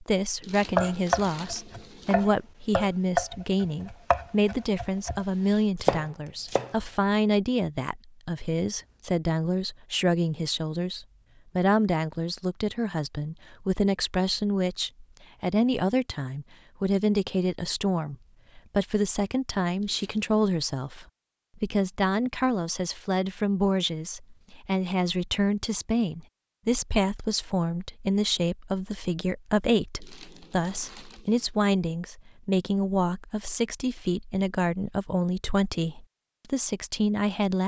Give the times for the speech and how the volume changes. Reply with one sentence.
You can hear the speech from 0.0 to 37.6 s, at a steady volume.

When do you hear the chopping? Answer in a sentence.
The chopping can be heard from 0.8 to 6.8 s.